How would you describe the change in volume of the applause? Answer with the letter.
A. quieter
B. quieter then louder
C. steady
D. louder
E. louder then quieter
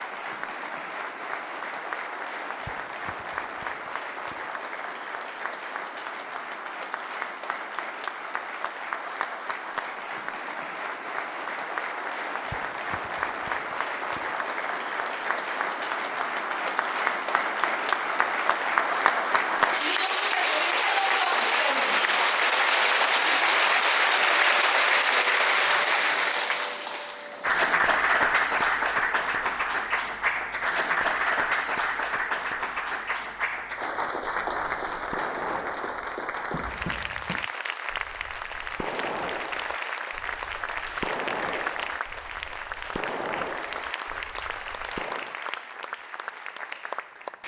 E.